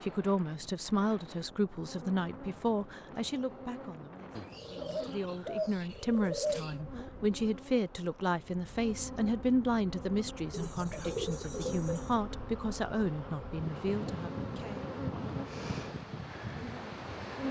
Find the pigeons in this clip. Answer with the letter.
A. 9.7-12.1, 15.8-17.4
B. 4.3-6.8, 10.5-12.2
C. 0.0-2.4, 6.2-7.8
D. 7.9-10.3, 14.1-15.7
B.